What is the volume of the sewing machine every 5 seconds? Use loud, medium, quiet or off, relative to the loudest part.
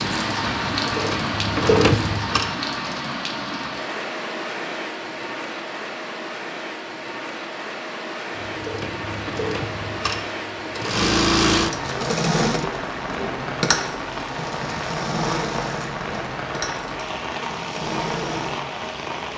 loud, medium, loud, medium.